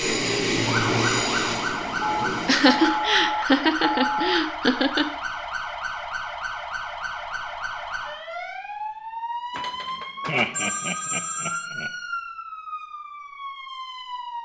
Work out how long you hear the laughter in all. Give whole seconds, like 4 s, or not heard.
4 s.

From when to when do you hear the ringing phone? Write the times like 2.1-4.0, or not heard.
2.0-4.4, 9.6-11.7.